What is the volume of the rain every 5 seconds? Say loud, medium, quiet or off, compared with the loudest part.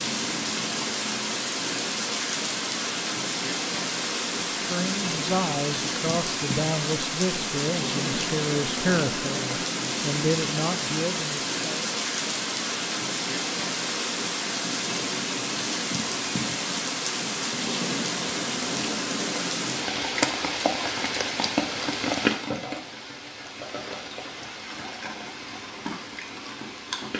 loud, loud, loud, loud, loud, medium.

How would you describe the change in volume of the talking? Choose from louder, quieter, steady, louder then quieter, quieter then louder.
steady.